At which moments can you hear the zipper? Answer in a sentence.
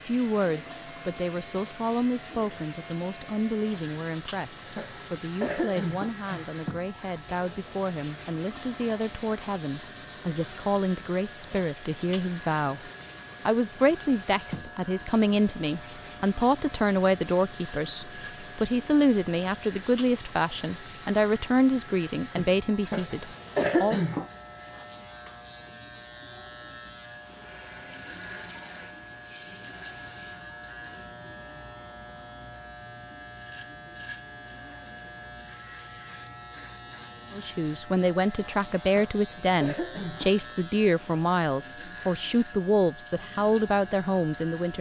You can't hear the zipper here.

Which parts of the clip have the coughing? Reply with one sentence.
The coughing can be heard from 4.8 to 6.5 s, from 22.9 to 24.2 s and from 39.0 to 40.3 s.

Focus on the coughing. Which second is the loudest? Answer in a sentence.
The loudest moment of the coughing is at 24 seconds.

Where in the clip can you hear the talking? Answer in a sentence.
The talking can be heard from 0.1 to 23.9 s and from 37.3 to 44.7 s.